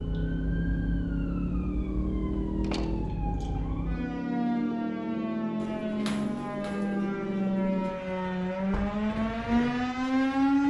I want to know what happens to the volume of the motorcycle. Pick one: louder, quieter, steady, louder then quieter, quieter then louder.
quieter.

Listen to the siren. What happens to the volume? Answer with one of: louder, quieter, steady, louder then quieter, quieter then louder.
louder.